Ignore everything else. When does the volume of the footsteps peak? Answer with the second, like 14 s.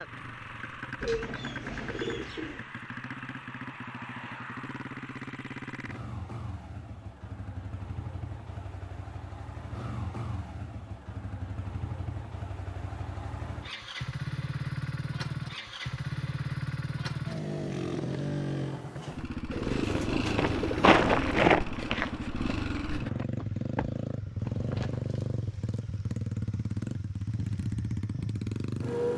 21 s.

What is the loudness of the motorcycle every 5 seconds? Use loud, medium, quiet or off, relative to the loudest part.
medium, medium, medium, loud, loud, loud.